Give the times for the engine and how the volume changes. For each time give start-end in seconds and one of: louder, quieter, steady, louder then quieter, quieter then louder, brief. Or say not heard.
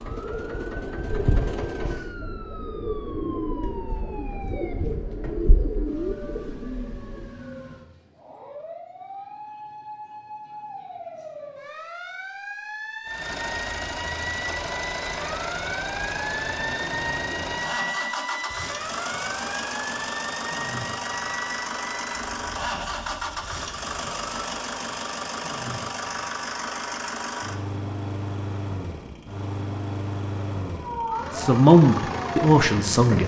0.0-2.1 brief
13.1-33.2 steady.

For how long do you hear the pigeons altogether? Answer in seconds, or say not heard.
7 s.